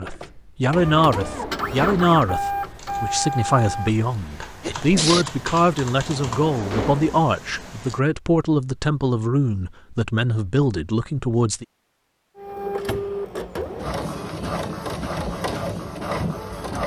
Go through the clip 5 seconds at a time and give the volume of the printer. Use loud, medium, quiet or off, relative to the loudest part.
loud, off, loud, loud.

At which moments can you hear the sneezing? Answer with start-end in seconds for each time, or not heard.
4.2-5.2.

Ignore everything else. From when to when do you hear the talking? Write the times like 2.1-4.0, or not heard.
0.0-11.7.